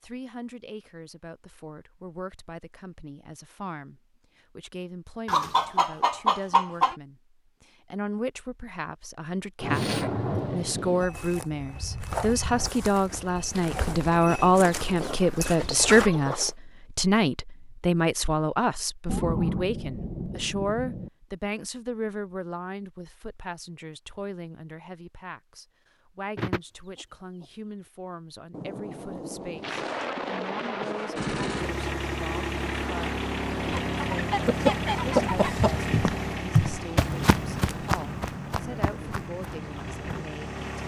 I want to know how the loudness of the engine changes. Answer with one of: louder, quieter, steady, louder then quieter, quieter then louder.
quieter.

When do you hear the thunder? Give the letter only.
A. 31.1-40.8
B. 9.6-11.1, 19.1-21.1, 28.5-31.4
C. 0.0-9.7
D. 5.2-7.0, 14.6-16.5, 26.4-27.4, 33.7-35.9
B.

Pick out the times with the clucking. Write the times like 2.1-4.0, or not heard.
5.2-7.0, 14.6-16.5, 26.4-27.4, 33.7-35.9.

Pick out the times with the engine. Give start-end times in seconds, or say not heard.
31.1-40.8.